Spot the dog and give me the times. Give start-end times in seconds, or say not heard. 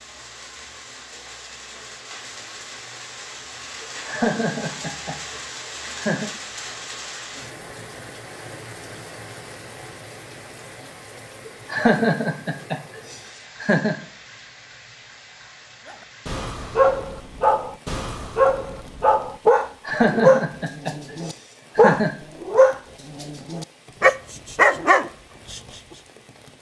15.8-25.6.